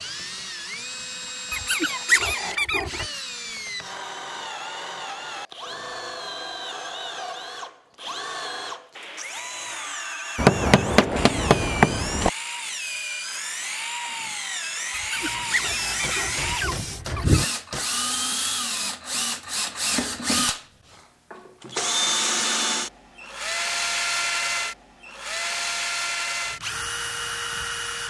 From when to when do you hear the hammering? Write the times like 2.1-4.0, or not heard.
10.3-12.3, 16.0-17.9.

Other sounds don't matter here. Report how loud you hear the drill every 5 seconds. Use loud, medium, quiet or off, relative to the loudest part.
medium, medium, medium, loud, loud, loud.